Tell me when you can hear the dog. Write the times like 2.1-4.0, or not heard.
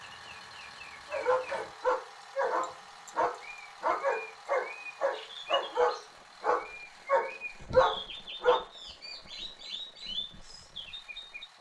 1.1-8.7.